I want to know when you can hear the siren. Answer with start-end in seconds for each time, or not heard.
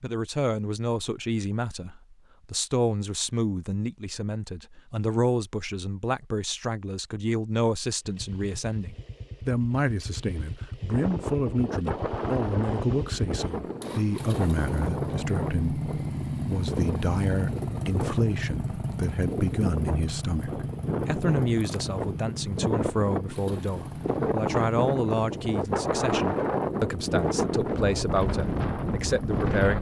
not heard.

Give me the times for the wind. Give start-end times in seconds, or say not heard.
10.9-29.7.